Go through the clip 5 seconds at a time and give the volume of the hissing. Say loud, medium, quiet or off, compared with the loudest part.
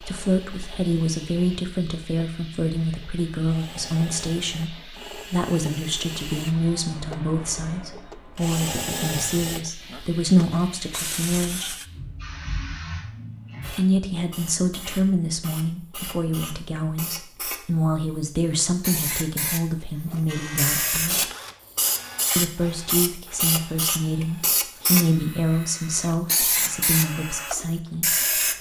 quiet, quiet, quiet, medium, loud, loud.